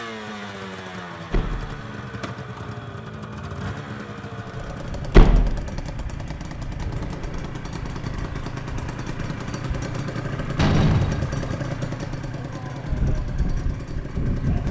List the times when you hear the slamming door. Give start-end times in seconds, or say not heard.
1.3-1.8, 5.1-5.6, 10.6-11.3.